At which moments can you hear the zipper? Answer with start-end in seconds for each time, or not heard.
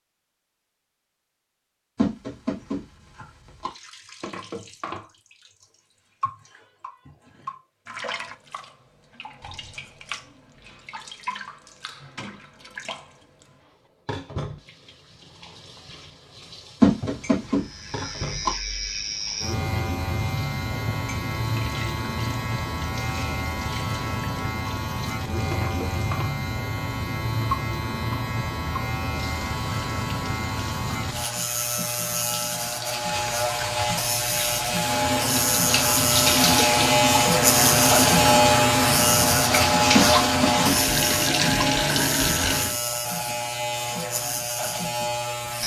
not heard.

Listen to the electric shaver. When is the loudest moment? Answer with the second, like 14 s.
38 s.